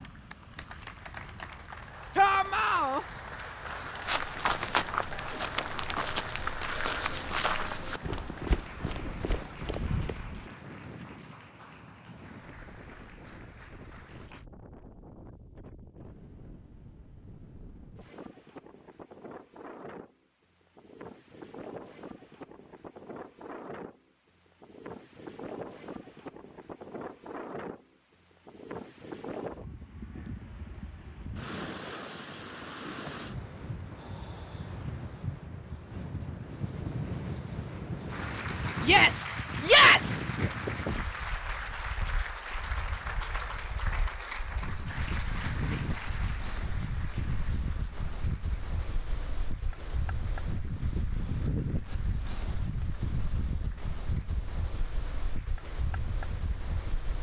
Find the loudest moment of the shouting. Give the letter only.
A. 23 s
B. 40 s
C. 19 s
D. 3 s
B.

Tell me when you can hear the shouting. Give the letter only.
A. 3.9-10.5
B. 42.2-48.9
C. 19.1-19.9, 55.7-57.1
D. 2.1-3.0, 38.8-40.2
D.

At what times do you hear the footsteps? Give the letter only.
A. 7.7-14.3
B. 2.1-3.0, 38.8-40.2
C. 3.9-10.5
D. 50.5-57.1
C.